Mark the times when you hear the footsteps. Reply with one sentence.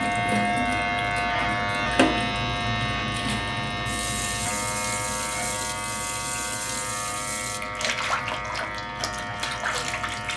You can't hear the footsteps here.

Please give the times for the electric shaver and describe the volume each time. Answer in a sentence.
The electric shaver can be heard from 0.0 to 10.3 s, getting quieter.